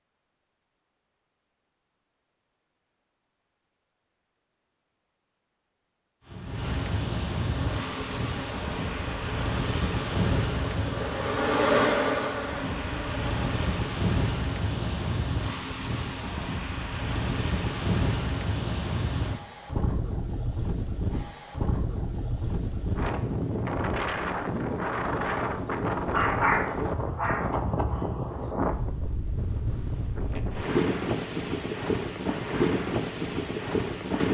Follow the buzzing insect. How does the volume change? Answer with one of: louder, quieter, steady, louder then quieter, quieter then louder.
louder then quieter.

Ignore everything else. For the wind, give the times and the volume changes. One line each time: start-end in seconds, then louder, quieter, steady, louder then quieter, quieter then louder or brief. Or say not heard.
6.2-34.3 steady.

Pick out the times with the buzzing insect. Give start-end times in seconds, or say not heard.
7.4-13.8.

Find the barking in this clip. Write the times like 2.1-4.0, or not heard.
26.1-28.6.